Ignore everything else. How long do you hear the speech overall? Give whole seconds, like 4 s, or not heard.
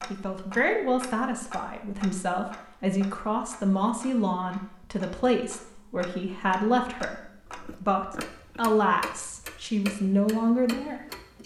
11 s.